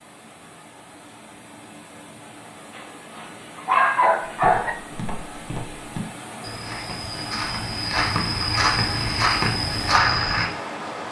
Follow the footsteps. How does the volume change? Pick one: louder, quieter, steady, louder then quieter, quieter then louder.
louder.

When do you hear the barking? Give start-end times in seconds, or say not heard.
2.8-4.7.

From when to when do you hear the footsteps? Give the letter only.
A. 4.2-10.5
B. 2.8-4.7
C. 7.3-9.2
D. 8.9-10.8
A.